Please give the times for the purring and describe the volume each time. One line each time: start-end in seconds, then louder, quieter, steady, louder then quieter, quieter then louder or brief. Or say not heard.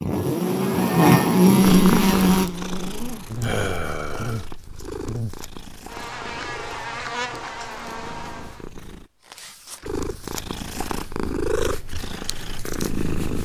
1.6-13.4 quieter then louder.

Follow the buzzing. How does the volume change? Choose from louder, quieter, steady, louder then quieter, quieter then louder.
quieter.